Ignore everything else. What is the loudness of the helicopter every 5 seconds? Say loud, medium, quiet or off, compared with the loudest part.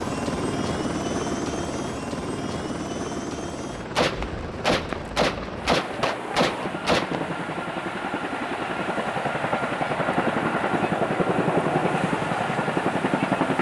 medium, medium, loud.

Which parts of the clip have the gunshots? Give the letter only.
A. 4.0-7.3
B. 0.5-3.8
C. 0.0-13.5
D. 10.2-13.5
A.